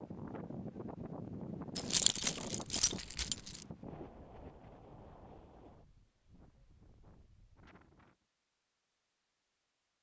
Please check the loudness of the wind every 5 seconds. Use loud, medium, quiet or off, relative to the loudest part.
loud, quiet.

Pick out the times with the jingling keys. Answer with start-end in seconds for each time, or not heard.
1.8-3.6.